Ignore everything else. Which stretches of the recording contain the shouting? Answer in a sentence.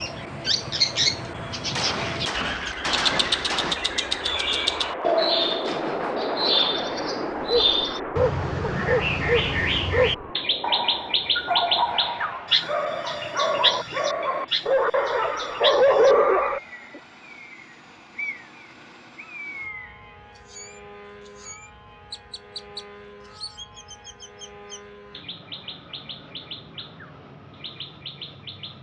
The shouting can't be heard in this clip.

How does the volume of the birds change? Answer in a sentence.
The loudness of the birds goes down.